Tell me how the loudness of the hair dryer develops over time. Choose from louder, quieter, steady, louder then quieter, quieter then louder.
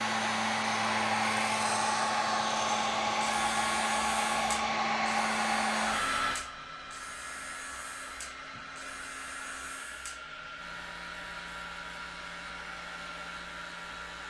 quieter.